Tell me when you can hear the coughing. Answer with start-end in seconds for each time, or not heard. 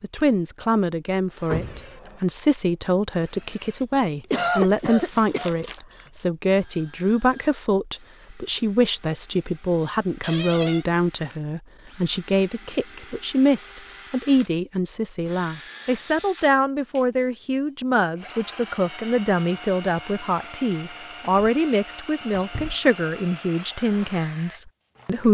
4.2-6.0.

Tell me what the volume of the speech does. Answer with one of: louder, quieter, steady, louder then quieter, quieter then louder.
steady.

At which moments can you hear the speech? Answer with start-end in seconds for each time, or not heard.
0.0-25.2.